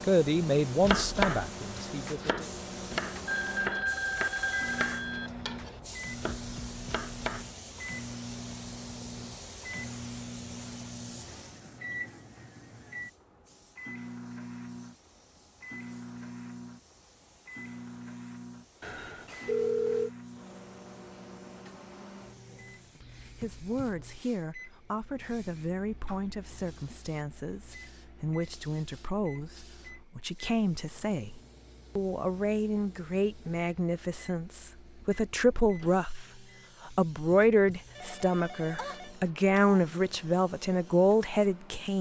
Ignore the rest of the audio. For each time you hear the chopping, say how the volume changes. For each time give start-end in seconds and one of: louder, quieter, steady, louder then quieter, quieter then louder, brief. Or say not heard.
0.8-7.5 quieter.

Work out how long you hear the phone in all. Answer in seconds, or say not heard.
5 s.